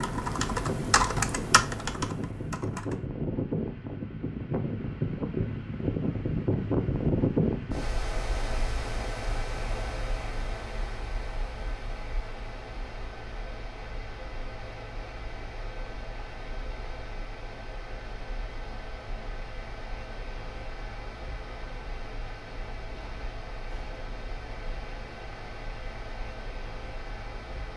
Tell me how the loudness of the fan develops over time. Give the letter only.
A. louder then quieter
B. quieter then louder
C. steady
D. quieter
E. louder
D.